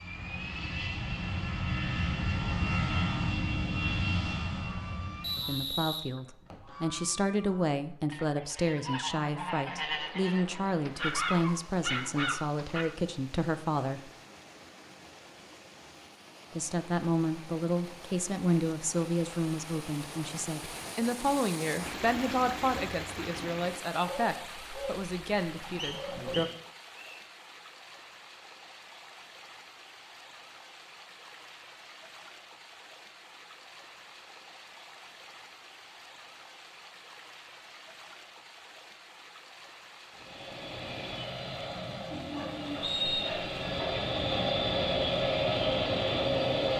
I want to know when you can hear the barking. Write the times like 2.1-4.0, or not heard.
10.8-12.8, 24.0-26.4, 42.1-44.0.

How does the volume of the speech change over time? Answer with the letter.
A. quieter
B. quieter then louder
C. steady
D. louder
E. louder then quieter
C.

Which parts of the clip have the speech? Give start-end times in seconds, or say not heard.
5.3-14.1, 16.5-26.4.